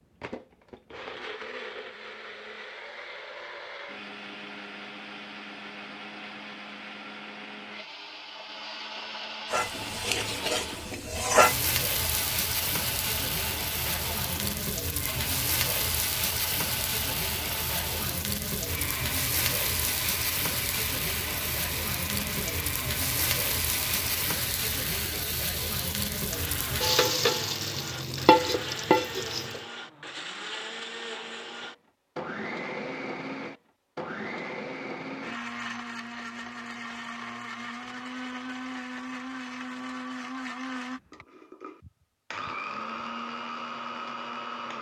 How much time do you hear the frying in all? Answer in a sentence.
You can hear the frying for 20 seconds altogether.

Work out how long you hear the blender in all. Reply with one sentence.
The blender can be heard for 45 seconds in total.